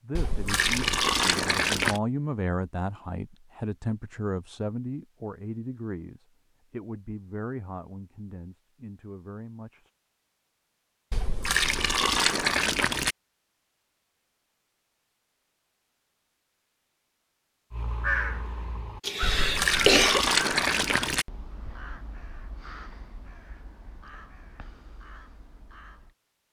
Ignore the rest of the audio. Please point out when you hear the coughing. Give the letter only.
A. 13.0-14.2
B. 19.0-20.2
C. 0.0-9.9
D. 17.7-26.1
B.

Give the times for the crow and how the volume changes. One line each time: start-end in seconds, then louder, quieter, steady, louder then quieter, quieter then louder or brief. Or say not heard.
17.7-26.1 quieter.